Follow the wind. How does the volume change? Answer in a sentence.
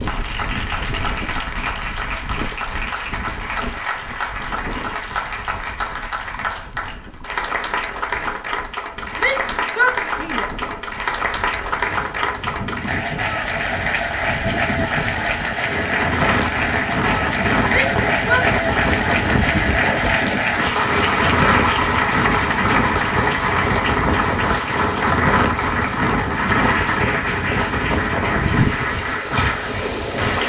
The loudness of the wind goes down, then up.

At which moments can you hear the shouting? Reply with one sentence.
The shouting can be heard from 9.2 to 10.6 s and from 17.7 to 18.4 s.